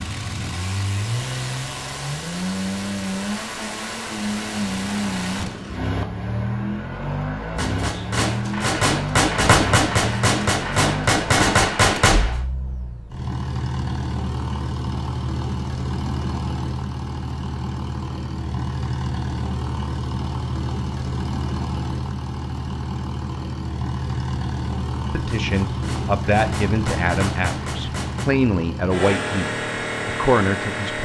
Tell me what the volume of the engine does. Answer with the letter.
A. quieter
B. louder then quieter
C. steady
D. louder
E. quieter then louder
C.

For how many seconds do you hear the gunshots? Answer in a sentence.
The gunshots can be heard for 8 seconds in total.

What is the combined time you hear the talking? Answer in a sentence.
The talking can be heard for 6 seconds in total.